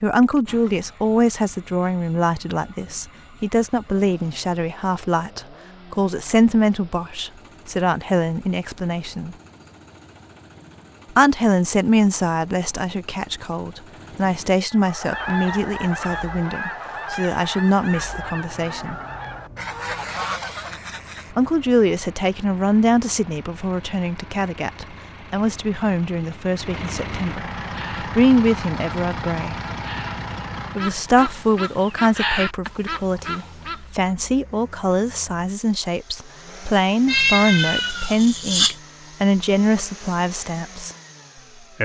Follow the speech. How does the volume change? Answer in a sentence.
The volume of the speech stays about the same.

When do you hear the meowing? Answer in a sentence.
You can hear the meowing from 37.0 to 38.8 s.